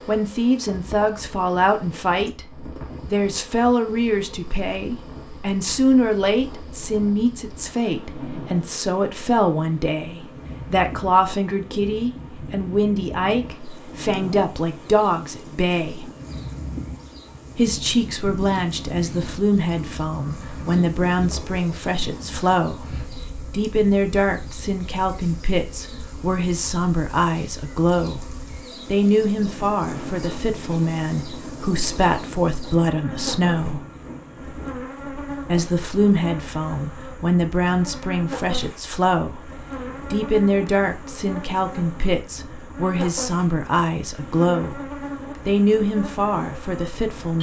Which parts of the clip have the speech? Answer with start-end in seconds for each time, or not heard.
0.1-16.1, 17.6-28.2, 28.9-33.8, 35.5-39.5, 40.1-44.8, 45.5-47.3.